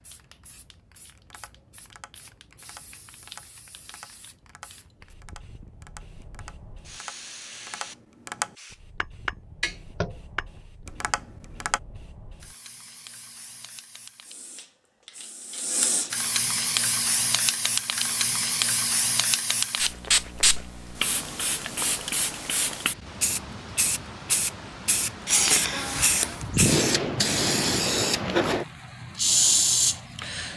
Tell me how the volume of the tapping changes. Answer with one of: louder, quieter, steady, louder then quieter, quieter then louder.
louder.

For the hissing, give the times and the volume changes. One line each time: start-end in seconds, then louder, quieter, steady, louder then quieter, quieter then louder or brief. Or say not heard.
0.0-30.5 louder.